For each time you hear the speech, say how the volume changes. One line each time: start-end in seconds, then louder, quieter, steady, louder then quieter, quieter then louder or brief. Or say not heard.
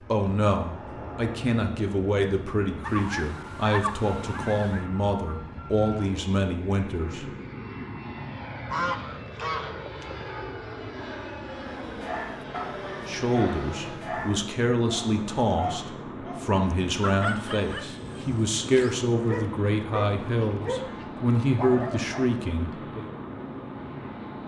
0.1-7.2 steady
13.1-23.1 steady.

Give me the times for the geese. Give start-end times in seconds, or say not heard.
2.8-4.8, 8.7-10.3, 20.2-22.1.